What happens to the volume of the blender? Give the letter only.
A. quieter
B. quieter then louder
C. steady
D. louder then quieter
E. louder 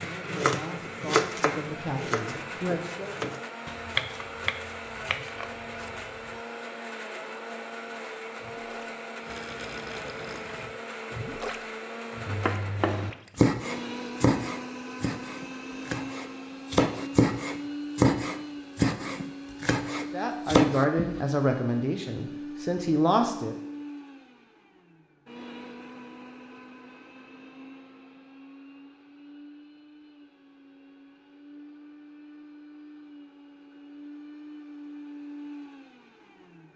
A.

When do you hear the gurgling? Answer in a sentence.
The gurgling can be heard from 8.3 to 13.4 s.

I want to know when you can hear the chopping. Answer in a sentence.
You can hear the chopping from 0.0 to 6.4 s and from 12.2 to 21.2 s.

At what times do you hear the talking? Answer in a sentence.
The talking can be heard from 0.0 to 3.1 s and from 20.1 to 23.6 s.